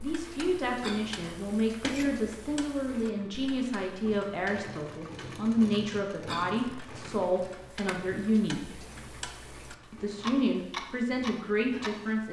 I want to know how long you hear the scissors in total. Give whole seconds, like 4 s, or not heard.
2 s.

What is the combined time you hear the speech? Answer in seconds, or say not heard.
11 s.